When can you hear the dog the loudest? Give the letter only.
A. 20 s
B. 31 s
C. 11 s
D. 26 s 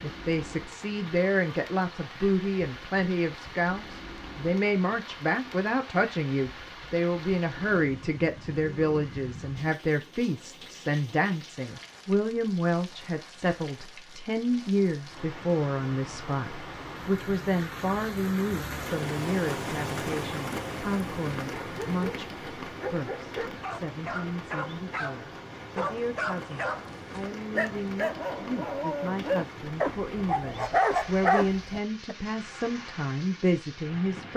B.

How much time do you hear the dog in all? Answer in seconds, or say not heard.
11 s.